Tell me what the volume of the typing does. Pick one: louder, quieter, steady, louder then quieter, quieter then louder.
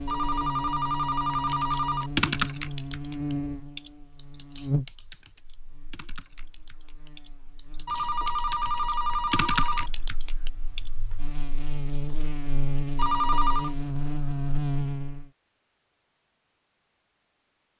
quieter then louder.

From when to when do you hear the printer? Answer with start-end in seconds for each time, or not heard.
not heard.